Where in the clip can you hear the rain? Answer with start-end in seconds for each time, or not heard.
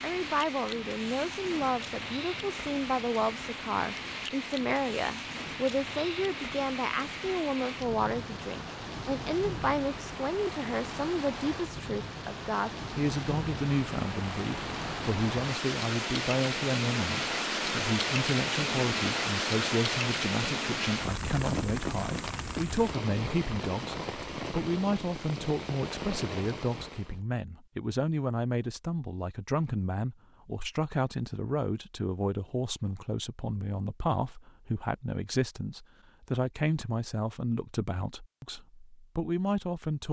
0.0-27.2.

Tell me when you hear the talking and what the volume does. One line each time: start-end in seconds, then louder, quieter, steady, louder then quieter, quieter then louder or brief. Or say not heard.
0.0-40.0 steady.